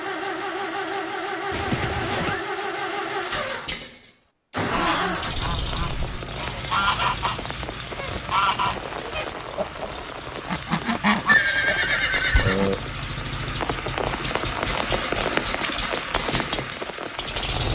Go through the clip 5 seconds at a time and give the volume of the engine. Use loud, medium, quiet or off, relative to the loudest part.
loud, medium, medium, loud.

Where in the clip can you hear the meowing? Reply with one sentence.
You can't hear the meowing here.